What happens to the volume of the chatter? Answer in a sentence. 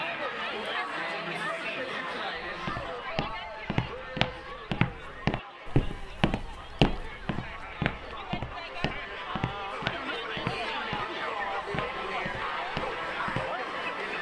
The volume of the chatter goes down, then up.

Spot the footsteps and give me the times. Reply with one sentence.
You can hear the footsteps from 2.5 to 13.5 s.